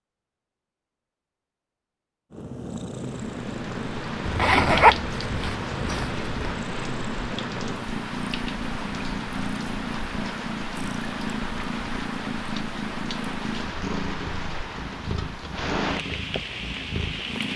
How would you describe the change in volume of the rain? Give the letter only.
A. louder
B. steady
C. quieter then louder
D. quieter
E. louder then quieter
B.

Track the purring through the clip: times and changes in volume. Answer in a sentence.
The purring can be heard from 2.3 to 17.5 s, at a steady volume.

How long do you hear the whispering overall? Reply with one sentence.
The whispering can't be heard in this clip.